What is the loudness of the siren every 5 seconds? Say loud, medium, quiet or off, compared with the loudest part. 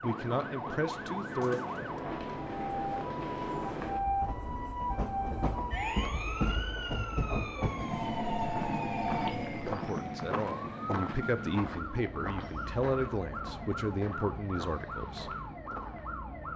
loud, loud, medium, medium.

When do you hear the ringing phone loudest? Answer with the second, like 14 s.
9 s.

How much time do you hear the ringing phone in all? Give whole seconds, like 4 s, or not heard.
2 s.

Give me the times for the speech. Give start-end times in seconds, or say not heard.
0.0-1.6, 9.7-15.3.